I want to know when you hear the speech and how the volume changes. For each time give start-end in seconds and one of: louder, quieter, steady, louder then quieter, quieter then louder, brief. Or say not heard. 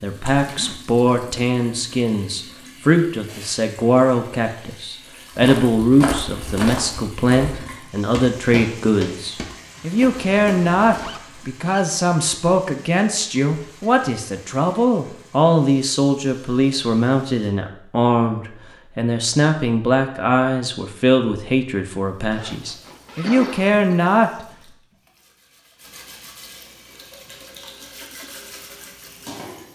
0.0-24.4 steady.